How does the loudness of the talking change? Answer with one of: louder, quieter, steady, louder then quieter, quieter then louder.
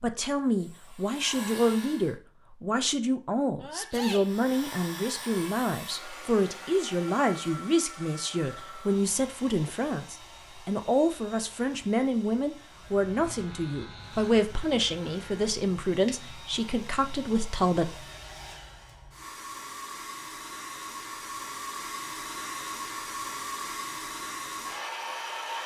steady.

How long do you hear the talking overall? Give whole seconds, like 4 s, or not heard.
18 s.